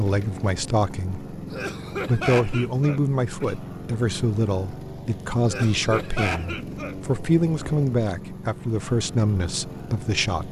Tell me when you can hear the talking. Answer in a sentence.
The talking can be heard from 0.0 to 1.4 s and from 2.0 to 10.4 s.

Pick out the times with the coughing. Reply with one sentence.
You can hear the coughing from 1.5 to 3.5 s and from 5.5 to 7.0 s.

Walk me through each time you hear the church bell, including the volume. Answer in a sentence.
The church bell can't be heard in this clip.